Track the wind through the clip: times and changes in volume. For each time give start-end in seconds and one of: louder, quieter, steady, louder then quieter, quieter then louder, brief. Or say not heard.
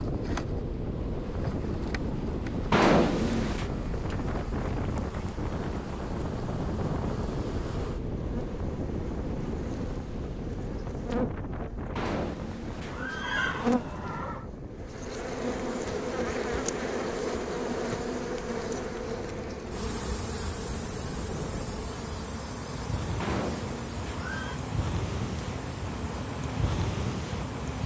0.0-27.8 quieter then louder.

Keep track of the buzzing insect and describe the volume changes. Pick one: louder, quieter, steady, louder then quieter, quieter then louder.
louder then quieter.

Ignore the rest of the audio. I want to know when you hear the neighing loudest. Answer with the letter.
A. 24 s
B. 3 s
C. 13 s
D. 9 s
B.